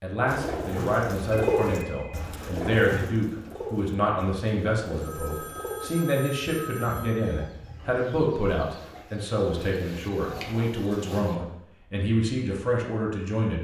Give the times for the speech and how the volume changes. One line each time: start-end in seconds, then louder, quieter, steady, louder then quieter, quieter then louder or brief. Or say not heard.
0.0-13.5 steady.